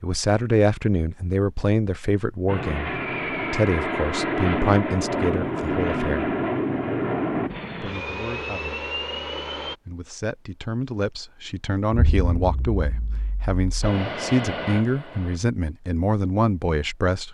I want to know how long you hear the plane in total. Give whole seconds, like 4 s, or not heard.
9 s.